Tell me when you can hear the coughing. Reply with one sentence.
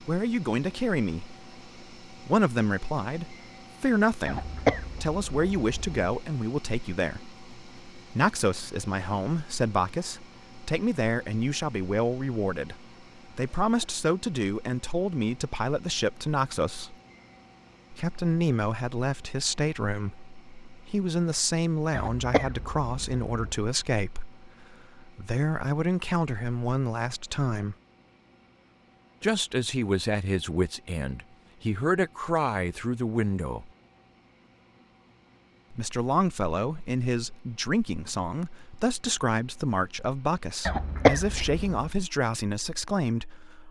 The coughing can be heard from 4.2 to 6.0 s, from 21.9 to 23.6 s and from 40.6 to 41.9 s.